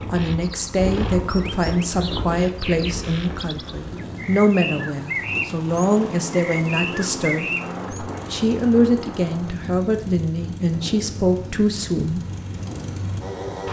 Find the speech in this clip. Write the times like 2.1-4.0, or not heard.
0.1-7.5, 8.3-12.2.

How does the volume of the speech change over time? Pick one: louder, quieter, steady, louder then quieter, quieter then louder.
steady.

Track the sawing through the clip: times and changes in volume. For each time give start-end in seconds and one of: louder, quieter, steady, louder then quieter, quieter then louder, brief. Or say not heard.
not heard.